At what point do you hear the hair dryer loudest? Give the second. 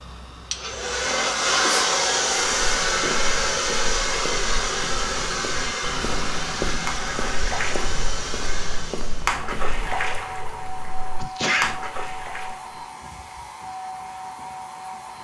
2 s.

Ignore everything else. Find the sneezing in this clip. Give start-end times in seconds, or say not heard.
1.4-1.9, 11.2-11.8.